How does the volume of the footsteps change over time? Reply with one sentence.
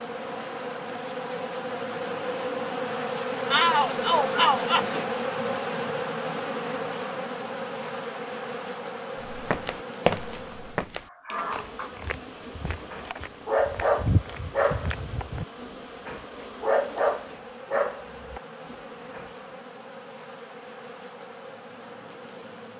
The loudness of the footsteps goes down, then up.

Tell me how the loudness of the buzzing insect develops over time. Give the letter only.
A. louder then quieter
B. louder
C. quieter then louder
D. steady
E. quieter
E.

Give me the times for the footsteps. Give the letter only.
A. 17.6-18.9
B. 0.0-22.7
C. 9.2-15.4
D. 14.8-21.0
C.